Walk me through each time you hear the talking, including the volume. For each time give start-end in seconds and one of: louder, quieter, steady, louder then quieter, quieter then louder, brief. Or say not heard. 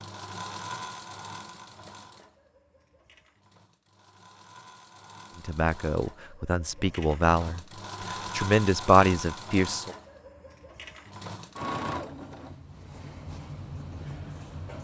5.3-9.9 louder.